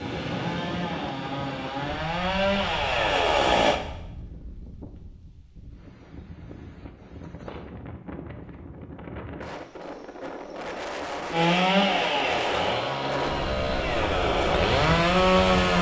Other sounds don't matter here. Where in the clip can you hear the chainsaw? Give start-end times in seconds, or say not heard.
0.0-3.8, 11.3-15.7.